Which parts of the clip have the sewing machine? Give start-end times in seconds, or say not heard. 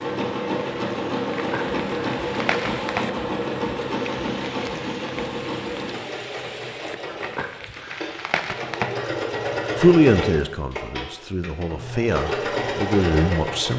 0.0-13.7.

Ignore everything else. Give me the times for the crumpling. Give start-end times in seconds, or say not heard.
1.4-3.1, 7.2-8.9.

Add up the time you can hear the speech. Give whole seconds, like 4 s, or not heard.
4 s.